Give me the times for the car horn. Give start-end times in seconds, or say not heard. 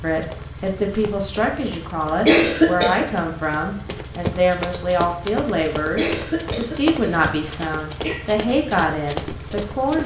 not heard.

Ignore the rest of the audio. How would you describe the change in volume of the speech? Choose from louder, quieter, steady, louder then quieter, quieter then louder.
steady.